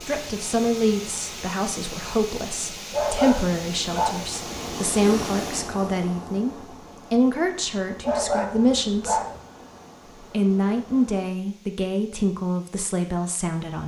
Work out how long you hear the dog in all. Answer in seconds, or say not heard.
3 s.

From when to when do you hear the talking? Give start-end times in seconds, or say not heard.
0.0-9.2, 10.3-13.8.